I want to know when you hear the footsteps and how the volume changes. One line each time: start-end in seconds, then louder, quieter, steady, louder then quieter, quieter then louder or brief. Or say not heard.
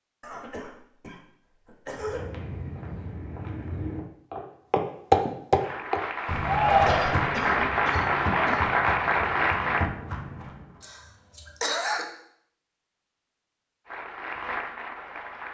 1.9-10.8 louder then quieter.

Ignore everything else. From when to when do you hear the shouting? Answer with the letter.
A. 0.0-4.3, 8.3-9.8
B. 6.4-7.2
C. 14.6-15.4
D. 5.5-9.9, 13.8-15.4
B.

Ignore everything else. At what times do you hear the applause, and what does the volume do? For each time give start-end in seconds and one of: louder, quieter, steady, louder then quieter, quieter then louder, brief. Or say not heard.
5.5-9.9 louder
13.8-15.4 brief.